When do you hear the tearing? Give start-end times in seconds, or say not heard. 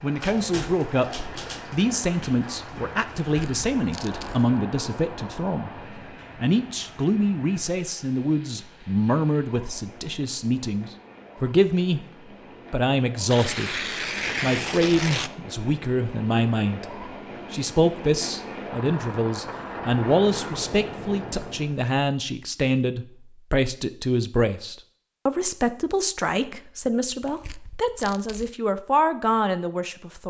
3.2-4.5, 13.2-15.3, 27.1-28.5.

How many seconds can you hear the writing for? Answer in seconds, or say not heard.
not heard.